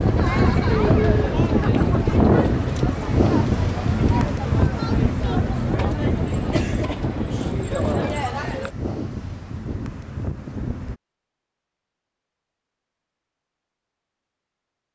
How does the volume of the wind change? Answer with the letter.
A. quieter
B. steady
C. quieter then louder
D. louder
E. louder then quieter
A.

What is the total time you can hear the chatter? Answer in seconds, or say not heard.
9 s.